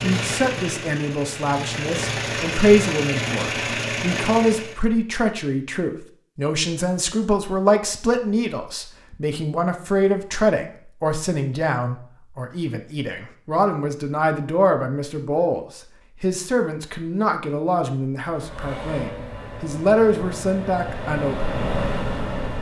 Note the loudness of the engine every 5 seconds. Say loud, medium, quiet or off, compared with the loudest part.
loud, off, off, medium, loud.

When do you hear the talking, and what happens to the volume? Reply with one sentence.
The talking can be heard from 0.0 to 21.6 s, at a steady volume.